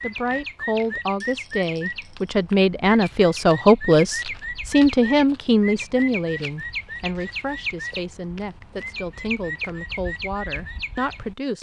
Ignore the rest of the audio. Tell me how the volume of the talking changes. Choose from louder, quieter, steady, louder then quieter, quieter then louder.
louder then quieter.